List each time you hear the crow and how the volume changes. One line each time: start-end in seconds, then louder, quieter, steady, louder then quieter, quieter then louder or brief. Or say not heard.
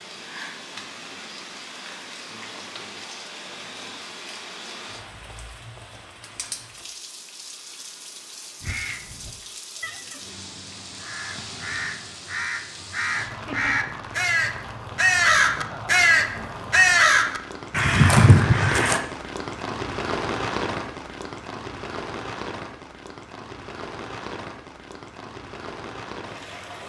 8.6-19.0 louder.